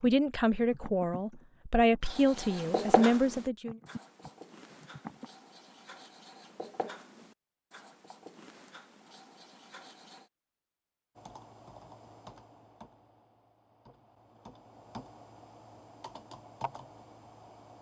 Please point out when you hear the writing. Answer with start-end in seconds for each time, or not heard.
2.0-10.2.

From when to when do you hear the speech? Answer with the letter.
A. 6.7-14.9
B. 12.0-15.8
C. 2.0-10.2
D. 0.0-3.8
D.